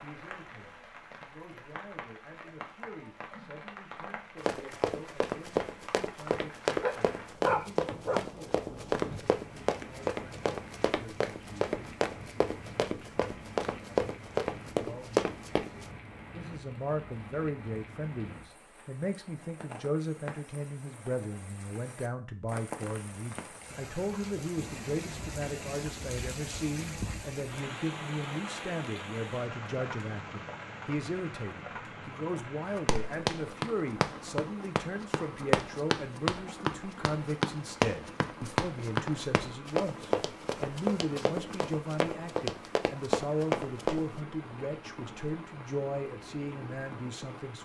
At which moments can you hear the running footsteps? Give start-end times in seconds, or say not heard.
4.5-15.8, 32.9-44.2.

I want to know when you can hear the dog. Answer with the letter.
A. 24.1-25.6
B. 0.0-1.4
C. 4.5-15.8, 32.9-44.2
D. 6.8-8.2
D.